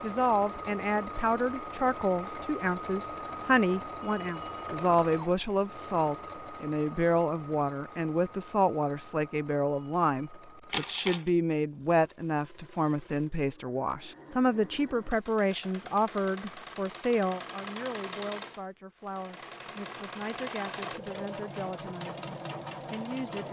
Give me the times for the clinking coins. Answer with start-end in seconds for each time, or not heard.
10.7-11.3.